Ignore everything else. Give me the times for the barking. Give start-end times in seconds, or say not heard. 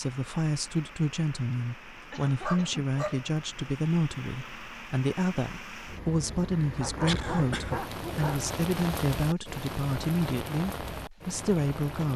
2.4-3.8, 6.8-8.4.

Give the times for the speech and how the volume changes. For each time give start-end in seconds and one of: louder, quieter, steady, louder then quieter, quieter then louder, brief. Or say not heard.
0.0-12.1 steady.